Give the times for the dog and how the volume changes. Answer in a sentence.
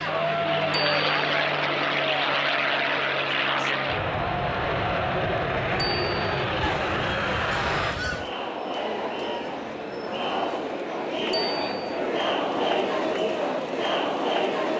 You can't hear the dog here.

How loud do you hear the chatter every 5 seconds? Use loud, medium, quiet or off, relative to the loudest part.
loud, medium, loud.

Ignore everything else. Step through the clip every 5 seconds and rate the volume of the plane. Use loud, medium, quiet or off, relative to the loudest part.
loud, loud, quiet.